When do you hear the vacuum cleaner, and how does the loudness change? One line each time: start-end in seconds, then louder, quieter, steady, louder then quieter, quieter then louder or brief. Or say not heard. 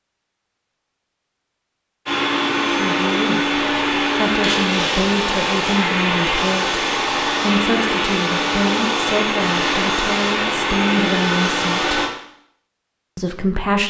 2.0-12.1 steady.